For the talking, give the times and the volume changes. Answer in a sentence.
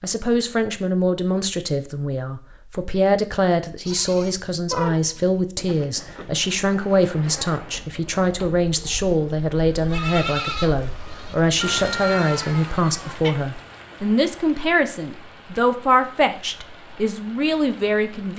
You can hear the talking from 0.0 to 18.3 s, at a steady volume.